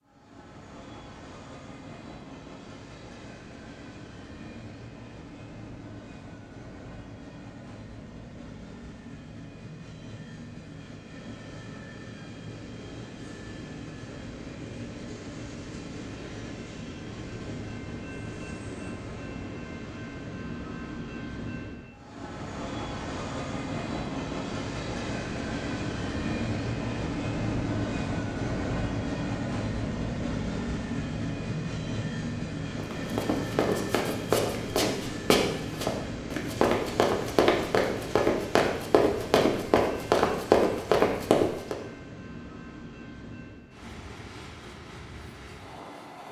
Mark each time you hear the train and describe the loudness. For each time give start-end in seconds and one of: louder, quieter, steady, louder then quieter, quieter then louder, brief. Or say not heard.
0.0-46.2 louder then quieter.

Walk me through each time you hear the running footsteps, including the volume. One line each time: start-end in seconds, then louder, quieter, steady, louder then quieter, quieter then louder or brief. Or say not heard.
32.8-41.8 louder.